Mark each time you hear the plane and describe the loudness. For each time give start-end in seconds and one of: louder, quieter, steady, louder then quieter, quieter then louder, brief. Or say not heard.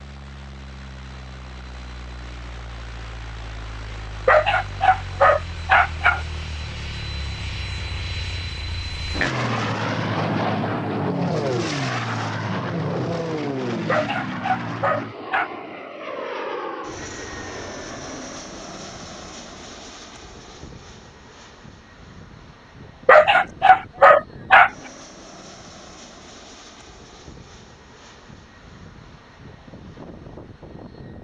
0.0-31.1 louder then quieter.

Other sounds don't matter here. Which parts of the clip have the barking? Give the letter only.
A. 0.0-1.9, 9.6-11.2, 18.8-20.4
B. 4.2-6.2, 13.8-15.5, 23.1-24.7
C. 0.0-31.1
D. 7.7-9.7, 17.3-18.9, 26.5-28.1
B.